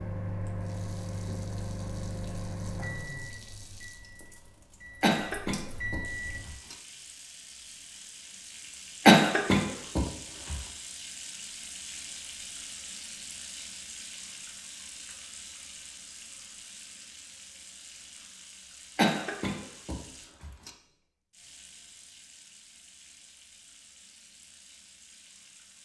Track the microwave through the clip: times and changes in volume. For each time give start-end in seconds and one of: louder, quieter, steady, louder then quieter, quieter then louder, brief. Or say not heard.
0.0-6.5 quieter then louder.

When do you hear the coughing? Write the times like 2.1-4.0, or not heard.
5.0-6.8, 9.1-10.6, 18.9-20.7.